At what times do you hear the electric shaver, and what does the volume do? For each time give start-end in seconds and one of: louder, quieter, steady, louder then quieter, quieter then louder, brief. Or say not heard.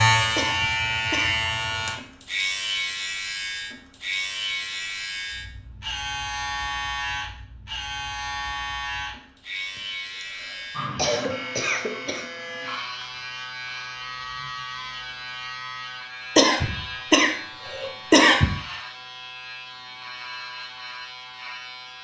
0.0-21.9 quieter.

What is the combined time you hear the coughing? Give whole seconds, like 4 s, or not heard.
6 s.